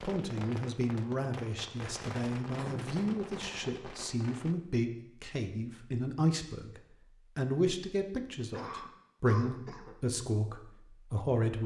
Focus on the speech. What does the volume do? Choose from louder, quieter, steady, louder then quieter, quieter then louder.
steady.